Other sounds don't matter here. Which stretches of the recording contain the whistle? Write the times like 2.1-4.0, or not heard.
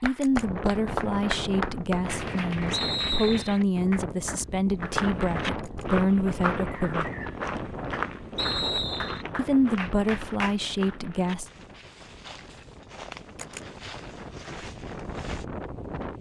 2.7-3.6, 8.3-9.2.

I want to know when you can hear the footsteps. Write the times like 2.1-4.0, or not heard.
4.8-15.4.